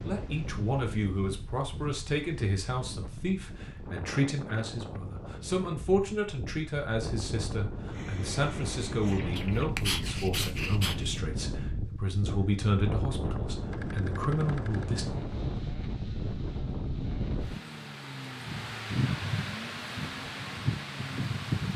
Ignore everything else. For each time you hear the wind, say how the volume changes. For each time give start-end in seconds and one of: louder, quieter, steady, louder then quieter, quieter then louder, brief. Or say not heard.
0.0-21.7 louder.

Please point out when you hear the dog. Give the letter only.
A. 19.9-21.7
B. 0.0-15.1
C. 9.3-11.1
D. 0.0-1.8
C.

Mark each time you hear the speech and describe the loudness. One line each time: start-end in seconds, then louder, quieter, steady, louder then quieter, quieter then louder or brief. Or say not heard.
0.0-15.1 steady.